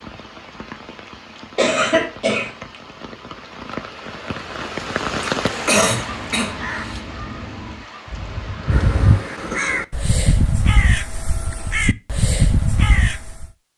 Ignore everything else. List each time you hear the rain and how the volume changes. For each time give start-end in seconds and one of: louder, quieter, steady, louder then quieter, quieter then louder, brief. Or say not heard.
0.0-9.6 louder then quieter.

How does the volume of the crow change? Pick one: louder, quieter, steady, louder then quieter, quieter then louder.
louder.